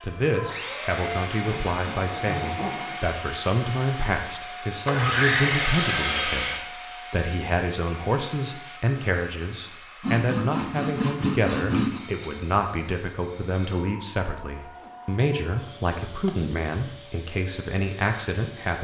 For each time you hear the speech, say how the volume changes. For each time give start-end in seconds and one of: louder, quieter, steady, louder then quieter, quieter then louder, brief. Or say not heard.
0.0-18.7 steady.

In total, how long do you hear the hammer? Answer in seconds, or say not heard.
not heard.